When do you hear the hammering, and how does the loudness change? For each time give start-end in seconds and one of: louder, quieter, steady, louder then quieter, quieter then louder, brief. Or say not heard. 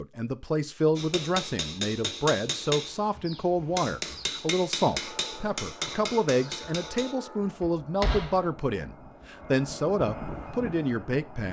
0.9-8.4 quieter.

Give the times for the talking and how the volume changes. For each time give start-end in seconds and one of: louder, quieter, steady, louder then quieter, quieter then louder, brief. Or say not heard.
0.0-11.4 steady.